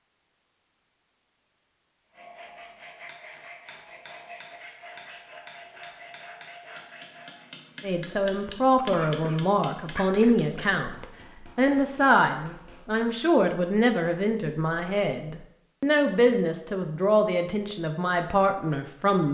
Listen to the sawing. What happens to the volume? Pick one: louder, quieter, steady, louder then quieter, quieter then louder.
steady.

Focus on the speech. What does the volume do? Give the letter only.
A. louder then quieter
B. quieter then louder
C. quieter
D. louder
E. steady
E.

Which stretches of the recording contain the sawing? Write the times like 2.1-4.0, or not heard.
2.0-7.5.